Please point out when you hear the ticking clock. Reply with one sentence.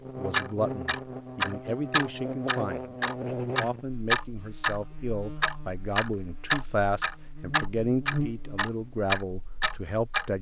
The ticking clock can be heard from 0.3 to 4.8 s and from 5.4 to 10.2 s.